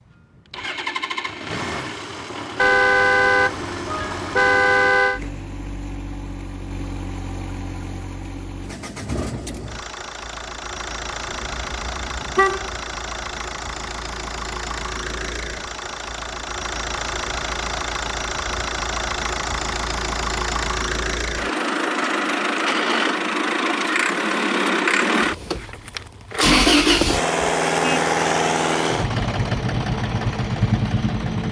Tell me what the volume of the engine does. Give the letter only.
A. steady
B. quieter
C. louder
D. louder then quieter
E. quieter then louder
C.